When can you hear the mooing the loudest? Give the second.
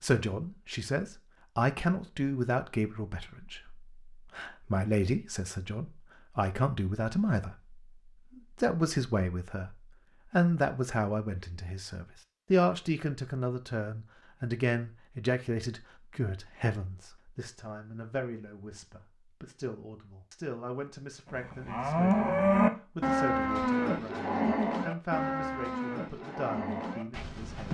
23 s.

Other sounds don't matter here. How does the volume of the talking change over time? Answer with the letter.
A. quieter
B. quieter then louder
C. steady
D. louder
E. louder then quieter
A.